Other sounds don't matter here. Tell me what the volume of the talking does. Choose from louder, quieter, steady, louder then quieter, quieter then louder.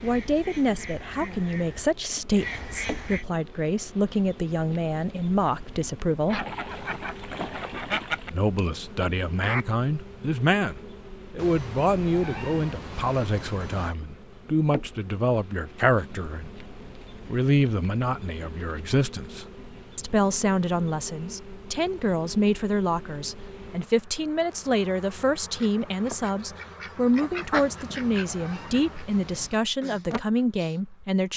steady.